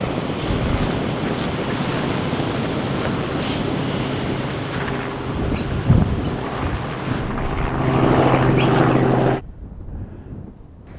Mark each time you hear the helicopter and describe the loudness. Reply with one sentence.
The helicopter can be heard from 0.0 to 9.4 s, getting louder.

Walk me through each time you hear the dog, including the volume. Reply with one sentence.
You can't hear the dog here.